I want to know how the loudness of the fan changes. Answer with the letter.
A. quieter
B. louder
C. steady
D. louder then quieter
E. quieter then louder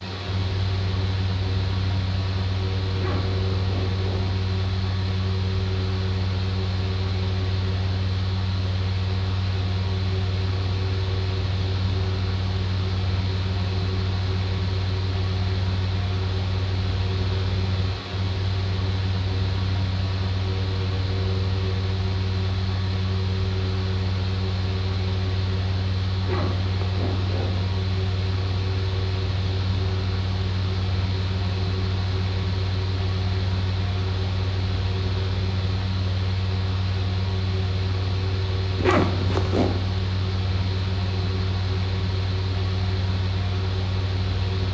C.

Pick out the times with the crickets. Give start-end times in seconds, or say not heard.
not heard.